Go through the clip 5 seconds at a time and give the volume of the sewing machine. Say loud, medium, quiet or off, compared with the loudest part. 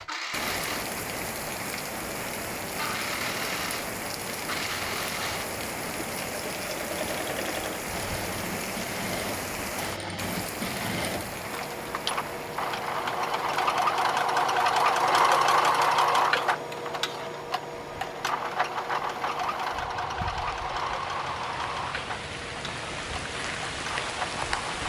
medium, medium, loud, loud, medium.